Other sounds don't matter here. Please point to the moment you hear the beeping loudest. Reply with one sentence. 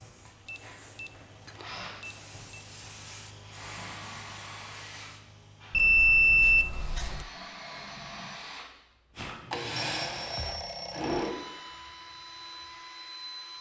The loudest moment of the beeping is at 6 seconds.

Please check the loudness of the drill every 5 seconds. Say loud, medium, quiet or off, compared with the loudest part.
medium, loud, loud.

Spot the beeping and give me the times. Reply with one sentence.
The beeping can be heard from 0.5 to 2.4 s, from 5.7 to 7.2 s and from 9.8 to 11.3 s.